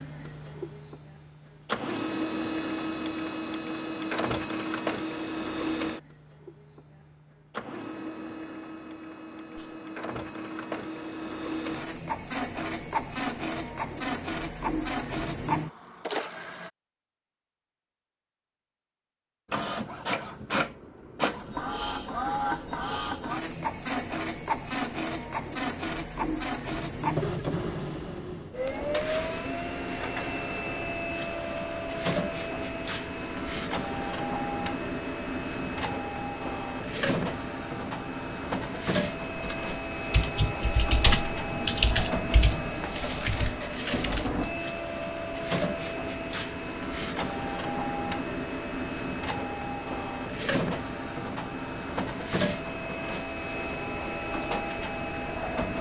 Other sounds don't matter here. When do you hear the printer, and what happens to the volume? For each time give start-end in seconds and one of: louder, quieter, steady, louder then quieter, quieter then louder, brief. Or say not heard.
0.0-16.7 quieter then louder
19.5-55.7 steady.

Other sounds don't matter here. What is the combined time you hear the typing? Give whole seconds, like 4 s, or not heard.
5 s.